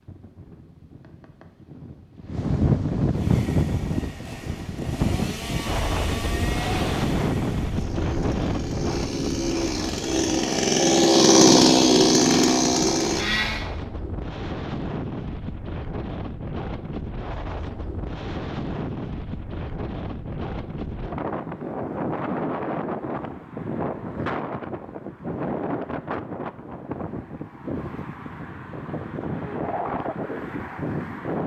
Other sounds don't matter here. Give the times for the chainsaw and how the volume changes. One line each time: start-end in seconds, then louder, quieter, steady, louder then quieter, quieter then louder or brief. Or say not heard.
3.1-13.7 louder.